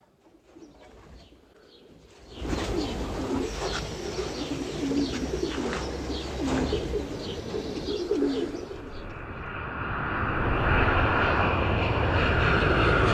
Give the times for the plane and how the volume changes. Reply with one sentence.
The plane can be heard from 3.4 to 13.0 s, getting louder.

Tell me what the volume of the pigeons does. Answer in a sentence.
The loudness of the pigeons goes up.